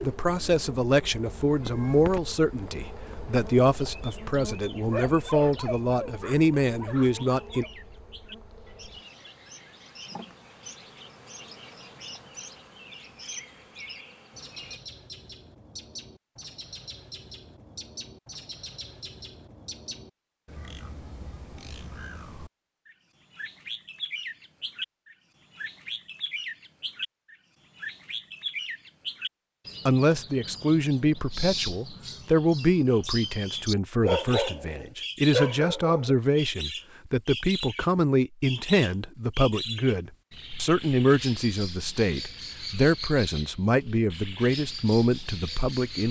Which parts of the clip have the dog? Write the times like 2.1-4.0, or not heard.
4.9-7.7, 34.0-36.1.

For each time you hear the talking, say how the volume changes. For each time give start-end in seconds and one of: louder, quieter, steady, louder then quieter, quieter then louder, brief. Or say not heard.
0.0-7.7 steady
29.9-46.0 steady.